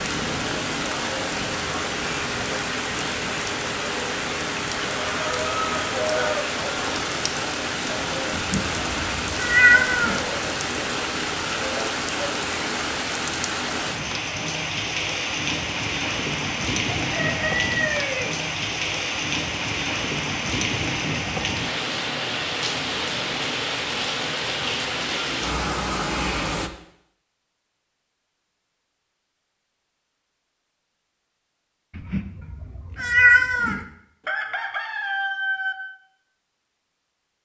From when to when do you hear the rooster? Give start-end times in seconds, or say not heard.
4.9-6.5, 17.1-18.4, 34.2-35.8.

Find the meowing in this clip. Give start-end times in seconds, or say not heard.
8.3-10.2, 31.9-33.9.